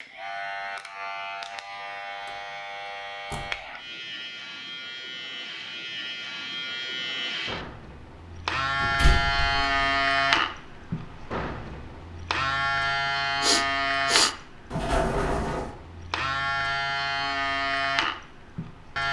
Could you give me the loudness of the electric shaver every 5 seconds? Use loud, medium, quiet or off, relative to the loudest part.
medium, loud, loud, loud.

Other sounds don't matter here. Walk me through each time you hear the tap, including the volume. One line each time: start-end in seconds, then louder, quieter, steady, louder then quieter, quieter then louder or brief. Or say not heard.
not heard.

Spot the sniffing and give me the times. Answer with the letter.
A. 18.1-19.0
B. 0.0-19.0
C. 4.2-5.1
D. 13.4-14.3
D.